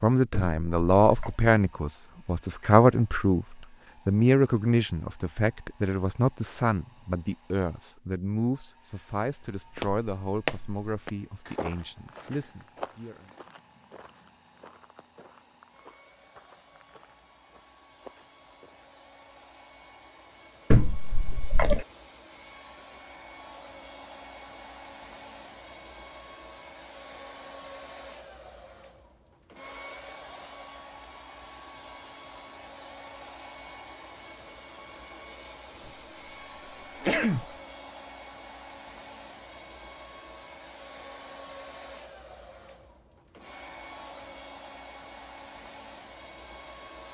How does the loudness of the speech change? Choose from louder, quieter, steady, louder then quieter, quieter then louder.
quieter.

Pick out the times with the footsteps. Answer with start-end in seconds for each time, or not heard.
9.5-18.9.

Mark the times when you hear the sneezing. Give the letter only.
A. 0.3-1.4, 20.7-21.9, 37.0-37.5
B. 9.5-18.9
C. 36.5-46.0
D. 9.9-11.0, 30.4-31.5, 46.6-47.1
A.